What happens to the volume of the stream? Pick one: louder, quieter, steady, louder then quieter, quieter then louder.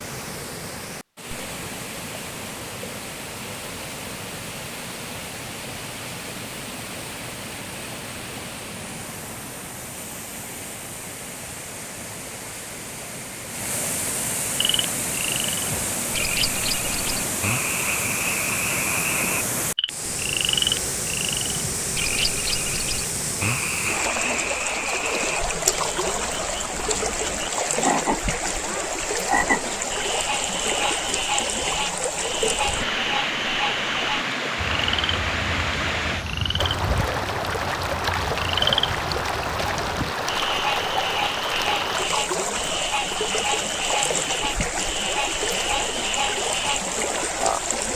louder.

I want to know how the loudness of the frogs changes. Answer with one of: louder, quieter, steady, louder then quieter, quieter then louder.
steady.